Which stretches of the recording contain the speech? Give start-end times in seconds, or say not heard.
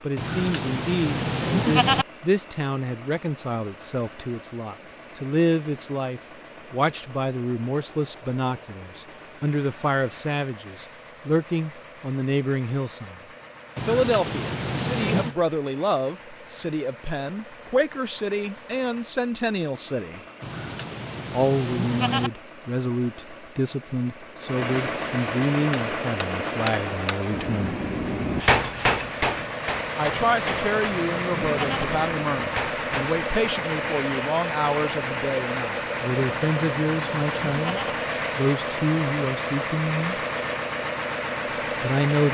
0.0-13.2, 13.8-20.2, 21.3-27.8, 29.9-40.2, 41.8-42.2.